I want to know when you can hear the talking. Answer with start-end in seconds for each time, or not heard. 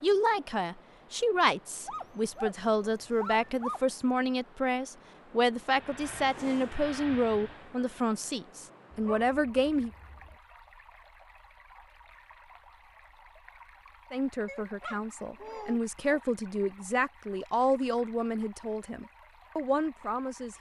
0.0-9.9, 14.1-20.5.